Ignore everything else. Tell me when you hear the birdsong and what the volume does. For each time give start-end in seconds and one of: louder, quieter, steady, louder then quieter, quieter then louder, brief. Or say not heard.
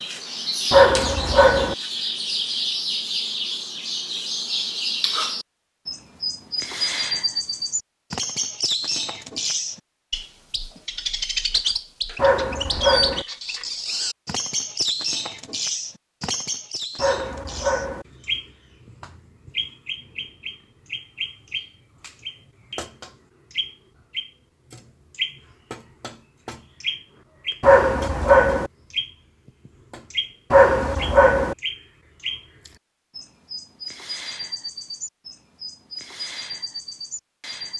0.0-37.7 quieter.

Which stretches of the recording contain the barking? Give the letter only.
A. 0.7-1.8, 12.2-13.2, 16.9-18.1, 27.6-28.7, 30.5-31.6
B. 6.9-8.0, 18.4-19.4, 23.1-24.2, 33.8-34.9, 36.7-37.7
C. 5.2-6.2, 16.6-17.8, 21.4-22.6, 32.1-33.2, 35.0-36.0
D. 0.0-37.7
A.